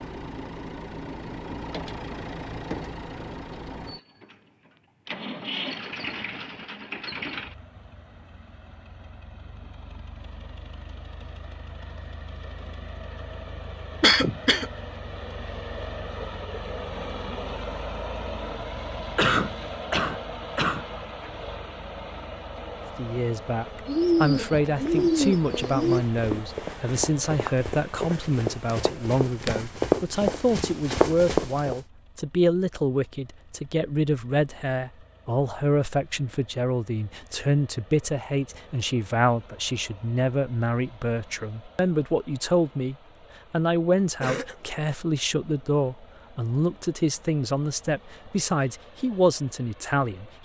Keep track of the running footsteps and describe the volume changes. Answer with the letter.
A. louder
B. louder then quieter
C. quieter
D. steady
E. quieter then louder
A.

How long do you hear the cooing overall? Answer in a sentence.
You can hear the cooing for 2 seconds altogether.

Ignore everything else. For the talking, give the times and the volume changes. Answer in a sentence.
You can hear the talking from 22.9 to 50.4 s, at a steady volume.